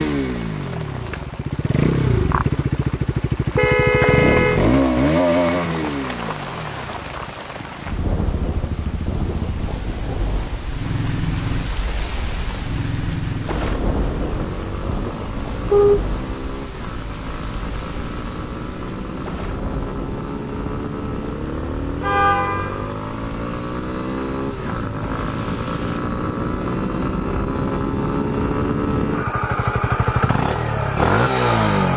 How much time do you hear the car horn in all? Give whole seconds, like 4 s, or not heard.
2 s.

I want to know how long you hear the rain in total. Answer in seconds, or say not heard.
26 s.